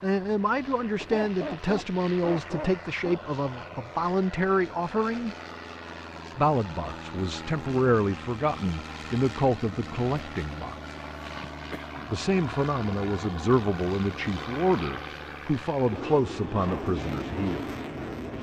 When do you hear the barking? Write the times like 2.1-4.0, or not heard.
1.0-3.2.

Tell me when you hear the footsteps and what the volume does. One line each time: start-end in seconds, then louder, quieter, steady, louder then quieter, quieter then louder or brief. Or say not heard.
not heard.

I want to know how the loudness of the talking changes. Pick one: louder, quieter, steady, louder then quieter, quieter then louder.
steady.